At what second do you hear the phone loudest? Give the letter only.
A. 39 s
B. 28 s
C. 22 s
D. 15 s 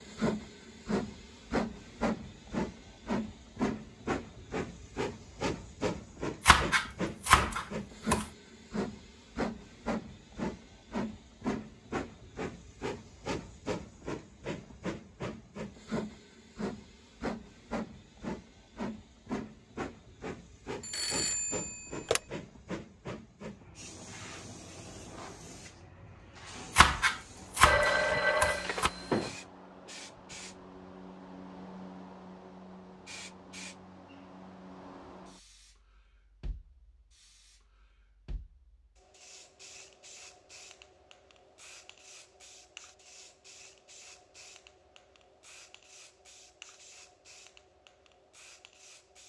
B.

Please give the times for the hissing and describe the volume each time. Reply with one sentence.
You can hear the hissing from 0.0 to 49.2 s, getting quieter.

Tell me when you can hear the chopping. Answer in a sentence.
You can hear the chopping from 6.5 to 8.2 s and from 26.8 to 28.9 s.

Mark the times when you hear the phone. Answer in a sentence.
You can hear the phone from 20.8 to 22.2 s and from 27.6 to 29.3 s.